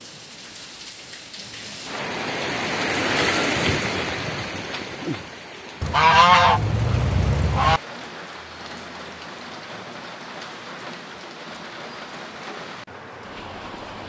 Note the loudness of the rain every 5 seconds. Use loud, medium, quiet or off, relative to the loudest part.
loud, medium, medium.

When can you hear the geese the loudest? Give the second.
6 s.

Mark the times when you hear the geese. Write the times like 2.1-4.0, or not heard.
5.8-7.8.